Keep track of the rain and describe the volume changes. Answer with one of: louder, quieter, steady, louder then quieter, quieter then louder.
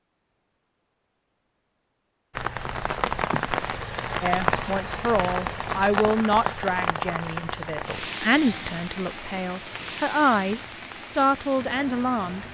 quieter.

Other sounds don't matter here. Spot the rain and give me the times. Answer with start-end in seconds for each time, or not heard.
2.3-12.4.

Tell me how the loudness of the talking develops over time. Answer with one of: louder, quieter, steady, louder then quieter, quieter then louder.
steady.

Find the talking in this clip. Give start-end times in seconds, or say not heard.
4.2-12.4.